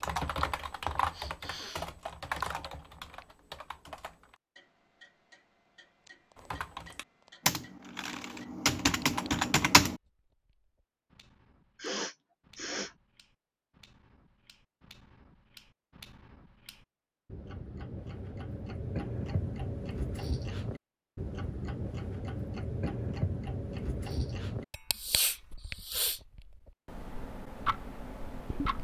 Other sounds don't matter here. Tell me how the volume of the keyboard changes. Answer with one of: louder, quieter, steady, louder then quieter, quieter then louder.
quieter then louder.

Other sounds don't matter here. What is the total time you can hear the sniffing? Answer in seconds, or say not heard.
3 s.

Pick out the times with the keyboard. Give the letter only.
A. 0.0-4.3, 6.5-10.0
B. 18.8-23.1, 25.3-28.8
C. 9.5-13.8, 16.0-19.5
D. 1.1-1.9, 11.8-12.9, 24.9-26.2
A.